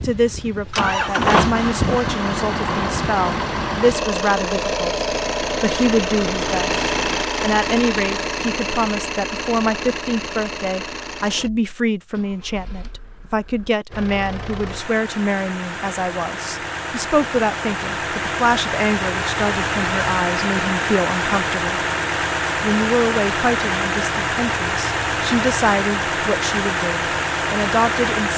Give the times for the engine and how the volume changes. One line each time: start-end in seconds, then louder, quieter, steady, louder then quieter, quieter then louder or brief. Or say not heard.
0.0-28.3 quieter then louder.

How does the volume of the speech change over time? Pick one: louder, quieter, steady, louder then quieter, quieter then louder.
steady.